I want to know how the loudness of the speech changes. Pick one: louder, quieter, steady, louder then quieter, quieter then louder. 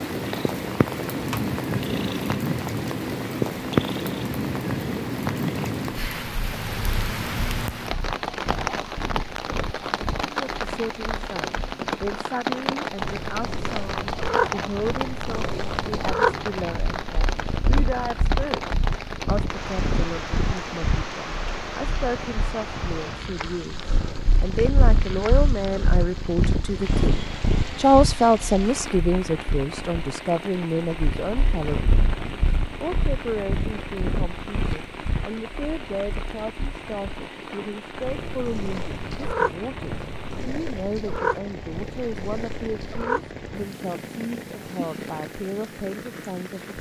louder then quieter.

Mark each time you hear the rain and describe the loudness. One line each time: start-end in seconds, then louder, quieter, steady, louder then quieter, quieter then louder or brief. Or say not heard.
0.0-46.7 quieter.